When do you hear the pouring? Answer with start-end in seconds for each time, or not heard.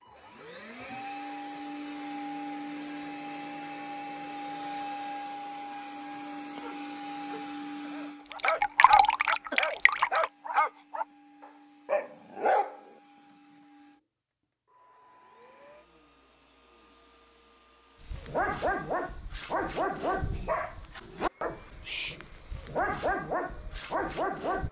8.2-10.3.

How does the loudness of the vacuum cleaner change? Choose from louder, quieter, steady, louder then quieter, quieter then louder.
quieter.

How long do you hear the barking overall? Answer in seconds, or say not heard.
13 s.